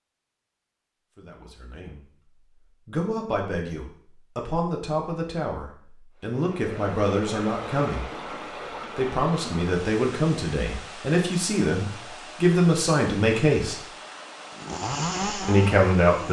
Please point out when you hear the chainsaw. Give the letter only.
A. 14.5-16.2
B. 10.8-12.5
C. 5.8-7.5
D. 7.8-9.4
A.